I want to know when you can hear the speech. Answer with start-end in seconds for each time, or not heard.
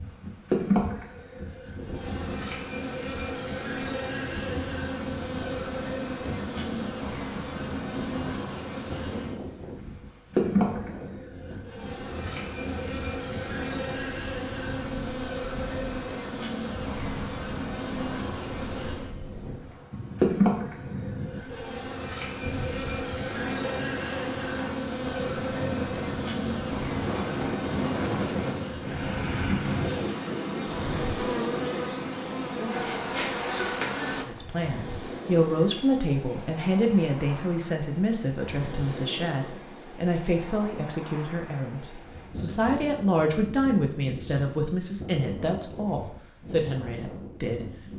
34.2-47.6.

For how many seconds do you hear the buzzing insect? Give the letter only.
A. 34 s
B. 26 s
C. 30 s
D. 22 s
A.